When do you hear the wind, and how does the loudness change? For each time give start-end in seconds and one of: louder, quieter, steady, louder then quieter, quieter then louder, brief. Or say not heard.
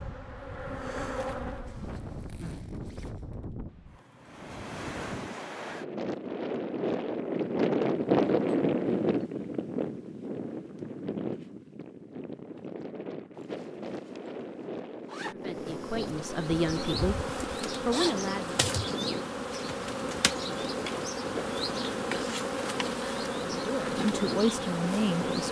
0.0-25.4 louder then quieter.